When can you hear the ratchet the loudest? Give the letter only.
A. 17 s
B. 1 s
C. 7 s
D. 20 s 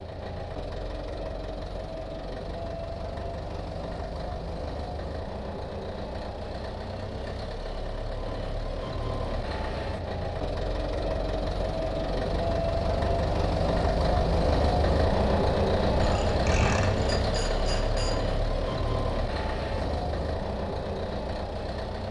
A.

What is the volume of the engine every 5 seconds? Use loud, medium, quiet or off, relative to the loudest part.
medium, medium, loud, loud, medium.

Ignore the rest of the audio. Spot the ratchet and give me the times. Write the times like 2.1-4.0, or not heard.
15.8-18.4.